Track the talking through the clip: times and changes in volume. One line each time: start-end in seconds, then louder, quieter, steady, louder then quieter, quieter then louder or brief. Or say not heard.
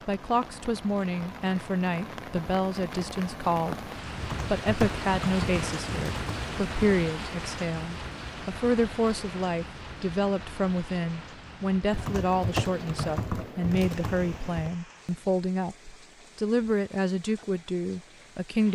0.1-18.7 steady.